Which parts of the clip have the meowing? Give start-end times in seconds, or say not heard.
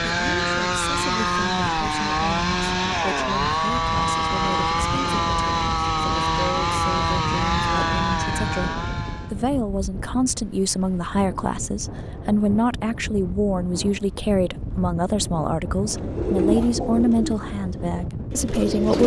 not heard.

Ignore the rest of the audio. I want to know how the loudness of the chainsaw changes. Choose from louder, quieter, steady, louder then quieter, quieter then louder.
steady.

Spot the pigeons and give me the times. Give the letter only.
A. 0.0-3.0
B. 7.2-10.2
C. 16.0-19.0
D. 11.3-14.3
C.